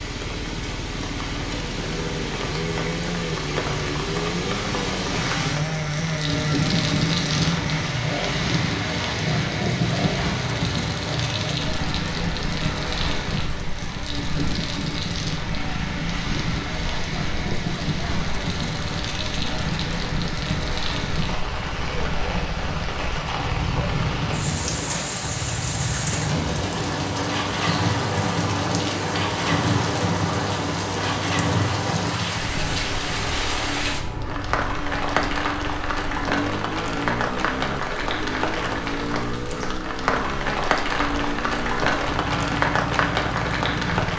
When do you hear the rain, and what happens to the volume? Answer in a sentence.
You can hear the rain from 0.0 to 44.1 s, at a steady volume.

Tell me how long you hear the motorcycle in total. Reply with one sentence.
You can hear the motorcycle for 44 seconds altogether.